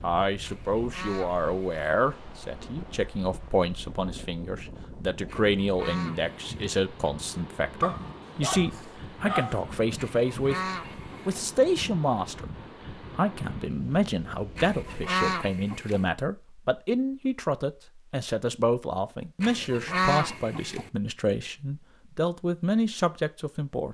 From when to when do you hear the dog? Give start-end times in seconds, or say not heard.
7.8-9.7.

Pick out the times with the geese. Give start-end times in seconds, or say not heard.
0.4-1.9, 5.2-6.5, 9.9-11.4, 14.6-16.1, 19.4-20.9.